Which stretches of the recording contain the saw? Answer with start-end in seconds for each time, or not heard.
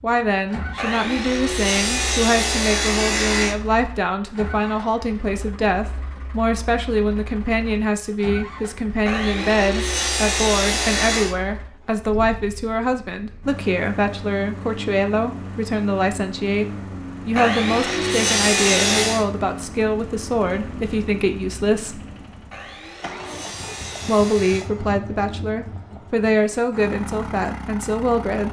0.8-3.5, 9.1-11.3, 17.4-19.2, 22.5-24.7.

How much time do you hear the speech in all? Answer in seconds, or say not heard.
26 s.